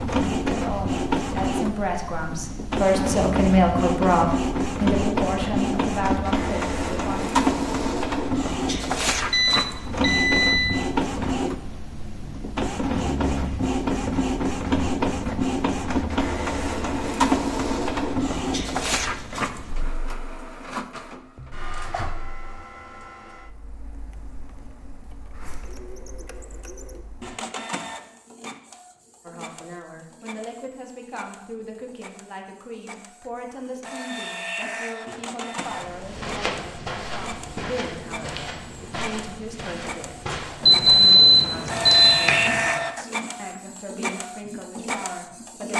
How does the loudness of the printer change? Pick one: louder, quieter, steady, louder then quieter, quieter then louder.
quieter then louder.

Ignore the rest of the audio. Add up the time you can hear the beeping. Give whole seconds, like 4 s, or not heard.
3 s.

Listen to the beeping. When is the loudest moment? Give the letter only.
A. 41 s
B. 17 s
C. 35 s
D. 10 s
A.